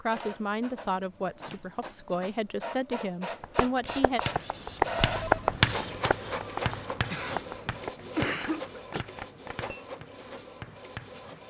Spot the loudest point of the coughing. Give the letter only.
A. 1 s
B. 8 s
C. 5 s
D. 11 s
B.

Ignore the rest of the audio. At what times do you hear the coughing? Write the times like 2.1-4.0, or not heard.
7.0-9.1.